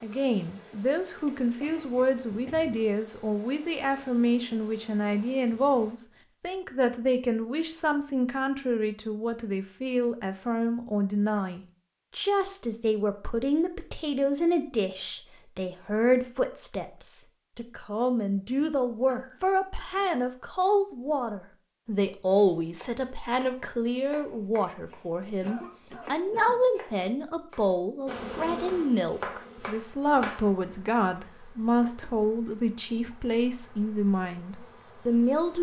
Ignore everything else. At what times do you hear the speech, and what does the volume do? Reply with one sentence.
The speech can be heard from 0.0 to 35.5 s, at a steady volume.